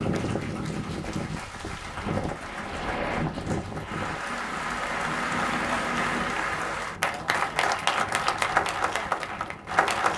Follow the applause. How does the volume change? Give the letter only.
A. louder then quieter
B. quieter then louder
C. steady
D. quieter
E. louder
E.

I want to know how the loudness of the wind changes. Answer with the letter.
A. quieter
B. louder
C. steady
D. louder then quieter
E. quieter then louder
A.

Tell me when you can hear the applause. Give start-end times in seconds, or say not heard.
0.0-10.1.